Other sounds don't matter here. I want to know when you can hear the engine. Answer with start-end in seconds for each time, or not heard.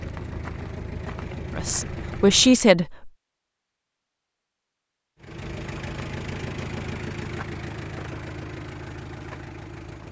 0.0-2.6, 5.2-10.0.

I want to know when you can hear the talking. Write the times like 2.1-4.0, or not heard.
1.6-3.1.